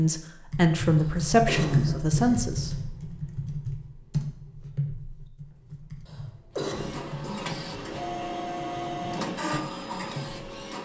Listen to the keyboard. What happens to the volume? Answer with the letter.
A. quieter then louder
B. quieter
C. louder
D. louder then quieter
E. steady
B.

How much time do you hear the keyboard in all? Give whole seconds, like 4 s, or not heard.
10 s.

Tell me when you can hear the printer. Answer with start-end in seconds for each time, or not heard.
6.6-10.7.